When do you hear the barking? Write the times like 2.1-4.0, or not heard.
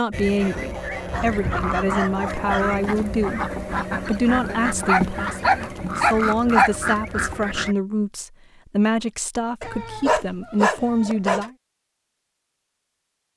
0.3-2.6, 4.5-6.7, 9.6-11.5.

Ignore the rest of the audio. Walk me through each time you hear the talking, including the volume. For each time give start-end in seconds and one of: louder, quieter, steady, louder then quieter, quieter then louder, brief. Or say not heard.
0.0-11.6 steady.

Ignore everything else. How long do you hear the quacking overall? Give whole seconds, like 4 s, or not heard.
8 s.